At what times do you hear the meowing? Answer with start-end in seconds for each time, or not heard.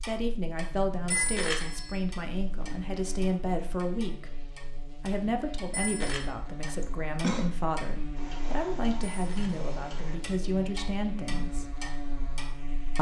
not heard.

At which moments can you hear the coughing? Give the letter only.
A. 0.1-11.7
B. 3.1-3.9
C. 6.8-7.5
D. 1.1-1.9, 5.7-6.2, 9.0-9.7
C.